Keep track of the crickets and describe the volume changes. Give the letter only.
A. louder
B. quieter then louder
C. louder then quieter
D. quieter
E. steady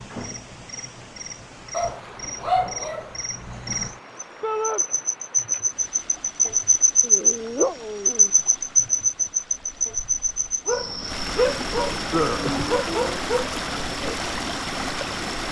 C.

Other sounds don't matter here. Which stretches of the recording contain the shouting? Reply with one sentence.
The shouting can be heard from 4.4 to 4.8 s.